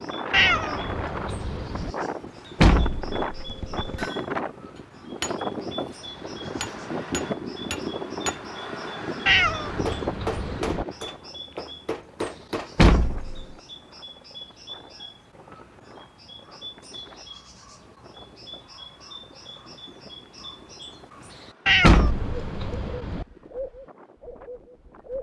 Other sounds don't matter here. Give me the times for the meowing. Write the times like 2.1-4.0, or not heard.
0.3-1.9, 9.2-10.8, 21.6-23.2.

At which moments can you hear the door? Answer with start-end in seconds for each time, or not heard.
2.6-4.0, 12.8-13.4, 21.8-22.9.